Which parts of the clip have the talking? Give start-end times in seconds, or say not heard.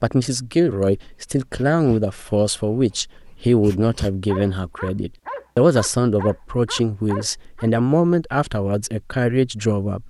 0.0-10.0.